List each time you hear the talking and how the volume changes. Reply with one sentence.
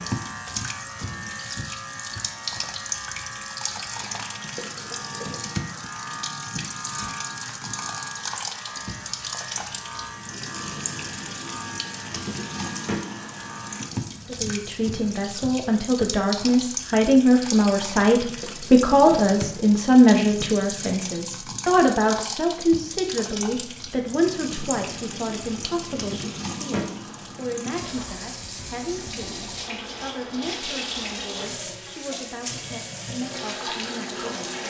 The talking can be heard from 14.2 to 34.6 s, getting quieter.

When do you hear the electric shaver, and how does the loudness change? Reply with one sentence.
You can hear the electric shaver from 0.0 to 13.8 s, at a steady volume.